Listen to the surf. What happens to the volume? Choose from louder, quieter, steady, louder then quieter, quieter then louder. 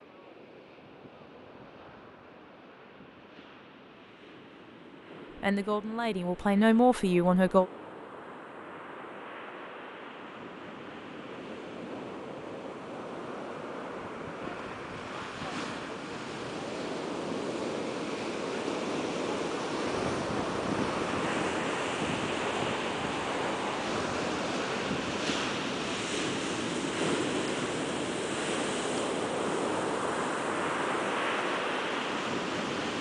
louder.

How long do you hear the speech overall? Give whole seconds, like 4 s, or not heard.
2 s.